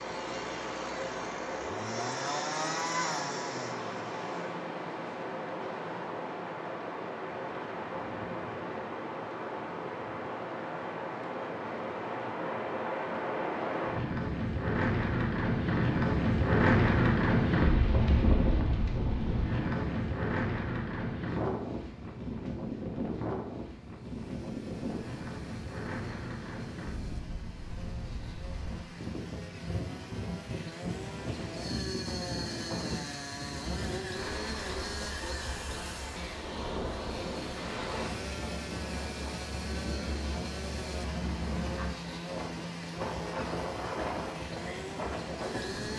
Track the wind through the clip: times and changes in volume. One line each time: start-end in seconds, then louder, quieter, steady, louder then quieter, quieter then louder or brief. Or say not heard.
0.0-45.9 louder then quieter.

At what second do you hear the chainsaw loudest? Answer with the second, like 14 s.
3 s.